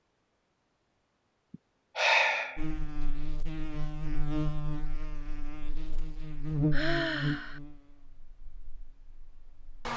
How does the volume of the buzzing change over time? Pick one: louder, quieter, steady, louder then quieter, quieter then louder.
louder then quieter.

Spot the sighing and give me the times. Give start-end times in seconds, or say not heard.
1.5-3.0, 6.7-7.6.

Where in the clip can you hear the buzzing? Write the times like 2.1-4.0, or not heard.
2.5-9.9.